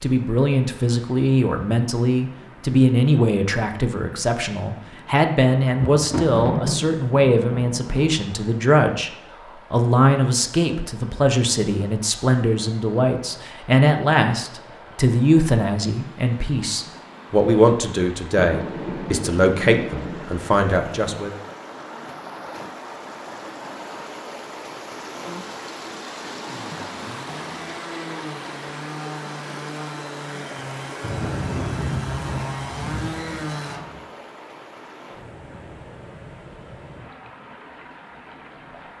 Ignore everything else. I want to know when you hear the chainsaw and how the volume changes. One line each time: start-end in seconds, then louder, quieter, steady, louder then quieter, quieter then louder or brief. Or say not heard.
26.4-33.8 louder.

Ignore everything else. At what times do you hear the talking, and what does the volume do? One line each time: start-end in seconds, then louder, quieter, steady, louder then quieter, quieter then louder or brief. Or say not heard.
0.0-21.4 steady.